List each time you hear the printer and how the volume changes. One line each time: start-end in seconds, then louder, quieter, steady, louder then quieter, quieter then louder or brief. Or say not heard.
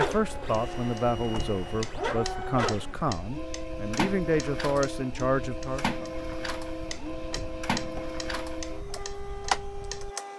0.0-10.3 steady.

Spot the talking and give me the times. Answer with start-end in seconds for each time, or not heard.
0.0-6.1.